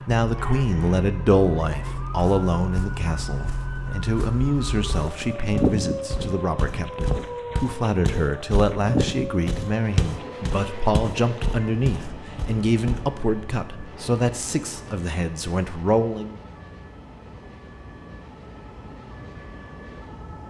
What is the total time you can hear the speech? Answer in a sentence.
You can hear the speech for 16 seconds altogether.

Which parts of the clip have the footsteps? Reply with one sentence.
The footsteps can be heard from 2.1 to 13.0 s.